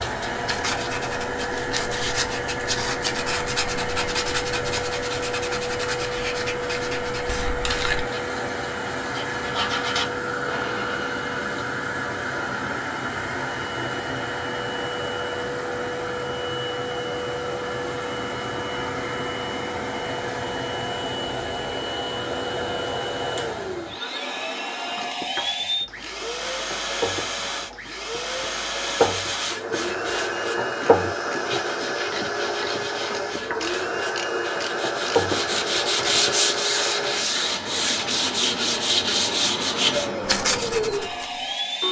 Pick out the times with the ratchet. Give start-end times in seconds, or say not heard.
24.9-36.6.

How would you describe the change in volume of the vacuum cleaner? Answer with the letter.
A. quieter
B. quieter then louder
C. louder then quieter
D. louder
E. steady
E.